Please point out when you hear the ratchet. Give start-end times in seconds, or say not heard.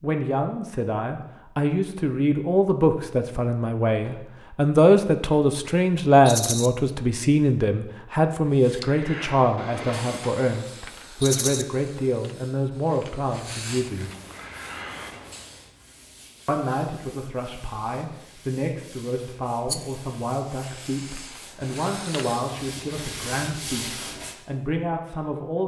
not heard.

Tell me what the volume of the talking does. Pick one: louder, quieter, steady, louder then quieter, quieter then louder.
quieter.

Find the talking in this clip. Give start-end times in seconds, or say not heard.
0.0-14.1, 16.4-25.6.